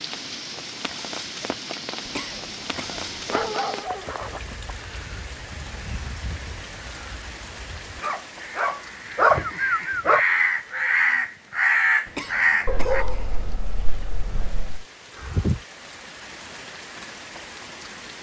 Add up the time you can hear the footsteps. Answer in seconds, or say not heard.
not heard.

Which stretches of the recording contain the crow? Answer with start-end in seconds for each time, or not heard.
4.2-13.1.